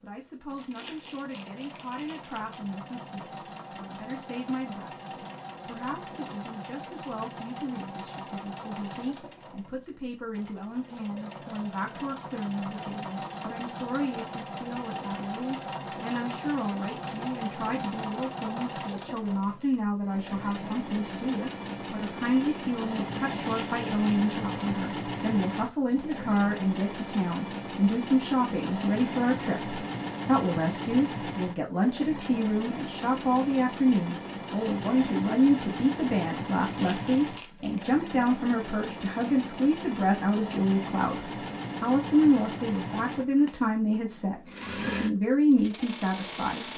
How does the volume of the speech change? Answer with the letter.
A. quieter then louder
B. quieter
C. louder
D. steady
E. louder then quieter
C.